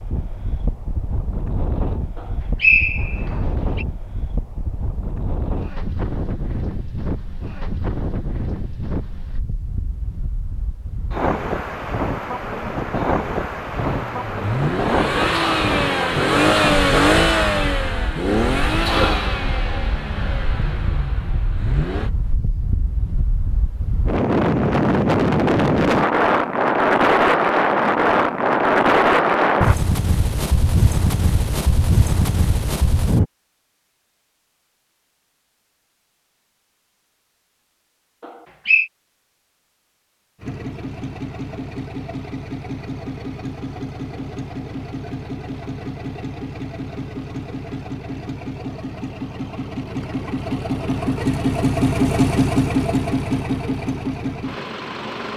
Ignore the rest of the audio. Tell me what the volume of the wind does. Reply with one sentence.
The loudness of the wind goes up.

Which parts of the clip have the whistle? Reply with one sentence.
You can hear the whistle from 2.6 to 3.9 s and from 38.2 to 38.9 s.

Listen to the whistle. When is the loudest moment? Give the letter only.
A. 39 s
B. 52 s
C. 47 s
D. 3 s
D.